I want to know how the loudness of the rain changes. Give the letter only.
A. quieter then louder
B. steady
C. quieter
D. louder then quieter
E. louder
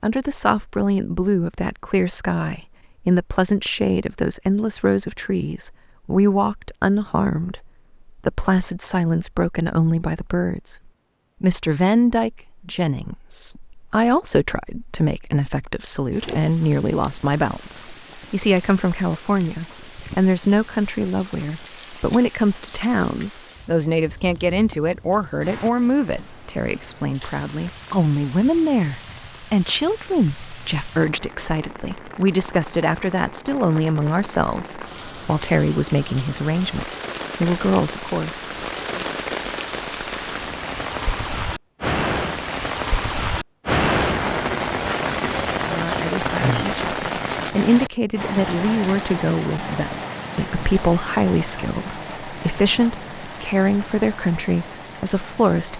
D.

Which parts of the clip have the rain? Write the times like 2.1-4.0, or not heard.
16.1-55.7.